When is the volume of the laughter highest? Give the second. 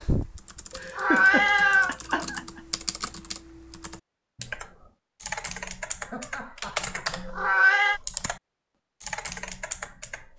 1 s.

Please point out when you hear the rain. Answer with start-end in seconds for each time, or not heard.
not heard.